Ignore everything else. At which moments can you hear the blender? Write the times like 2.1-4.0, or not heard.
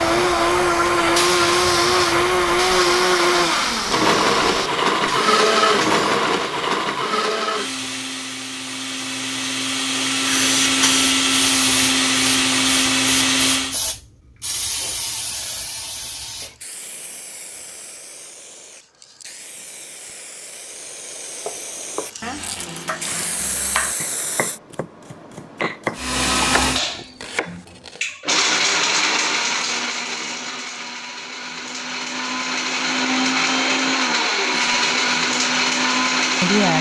0.0-13.8, 25.9-36.7.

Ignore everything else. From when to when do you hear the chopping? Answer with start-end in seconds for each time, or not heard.
21.4-28.0.